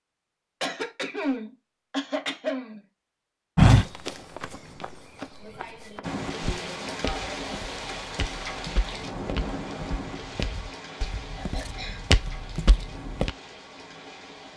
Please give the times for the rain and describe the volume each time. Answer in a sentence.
The rain can be heard from 6.0 to 14.5 s, getting quieter.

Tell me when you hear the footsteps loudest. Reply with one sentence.
The loudest moment of the footsteps is at 4 seconds.